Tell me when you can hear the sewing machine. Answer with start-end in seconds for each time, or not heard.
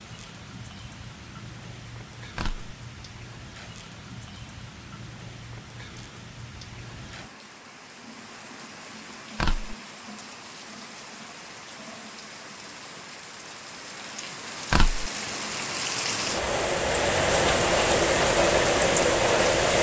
not heard.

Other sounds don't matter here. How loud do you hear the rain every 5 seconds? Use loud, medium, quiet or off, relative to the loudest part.
quiet, quiet, quiet, loud.